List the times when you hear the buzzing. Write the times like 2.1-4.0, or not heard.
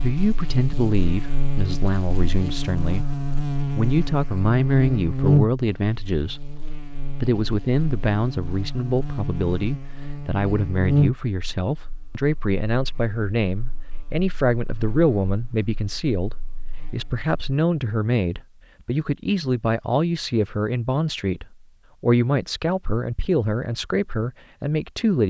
0.0-17.6.